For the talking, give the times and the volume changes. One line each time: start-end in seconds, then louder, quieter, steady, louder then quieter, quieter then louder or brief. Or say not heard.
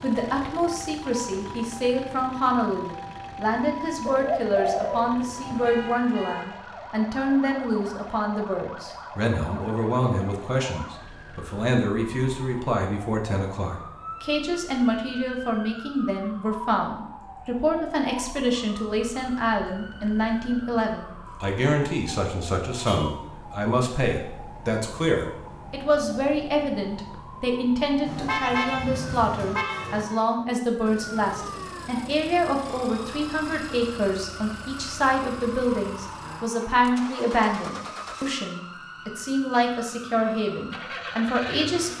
0.0-41.9 steady.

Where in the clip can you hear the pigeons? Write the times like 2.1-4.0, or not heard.
4.0-5.7.